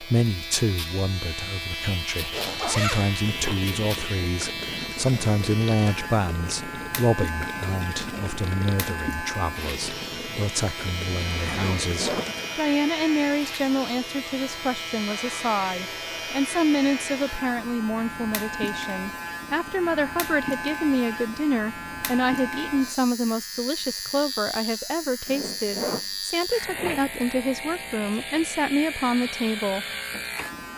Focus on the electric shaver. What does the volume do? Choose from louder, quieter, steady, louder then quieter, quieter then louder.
steady.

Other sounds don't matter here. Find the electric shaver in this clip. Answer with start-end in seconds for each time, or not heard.
0.0-30.7.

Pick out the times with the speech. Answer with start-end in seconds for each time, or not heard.
0.0-29.9.